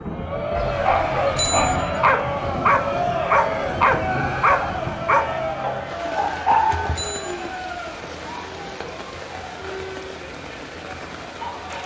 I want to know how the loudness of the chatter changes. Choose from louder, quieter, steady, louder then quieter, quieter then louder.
quieter.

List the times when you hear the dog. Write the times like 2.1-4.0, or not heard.
0.6-7.0.